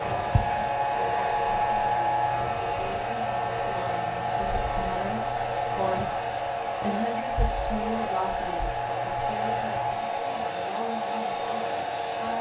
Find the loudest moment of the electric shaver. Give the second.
2 s.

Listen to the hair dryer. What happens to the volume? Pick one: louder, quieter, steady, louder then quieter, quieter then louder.
steady.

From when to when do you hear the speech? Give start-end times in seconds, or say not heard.
0.0-12.3.